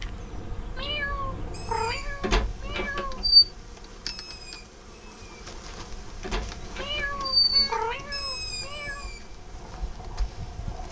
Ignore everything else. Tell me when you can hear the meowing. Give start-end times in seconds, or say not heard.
0.8-3.2, 6.8-9.1.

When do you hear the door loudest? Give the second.
3 s.